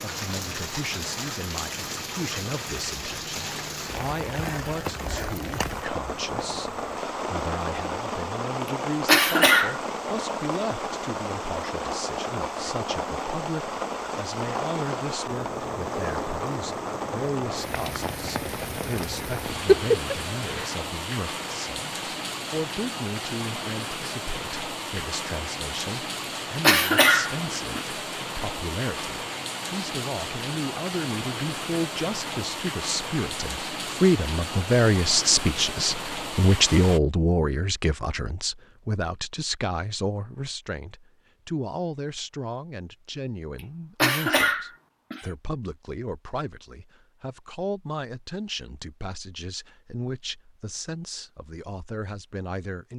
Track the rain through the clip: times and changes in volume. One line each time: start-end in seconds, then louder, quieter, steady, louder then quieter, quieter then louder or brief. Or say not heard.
0.0-37.0 steady.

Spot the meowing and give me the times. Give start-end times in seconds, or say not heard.
19.5-20.6.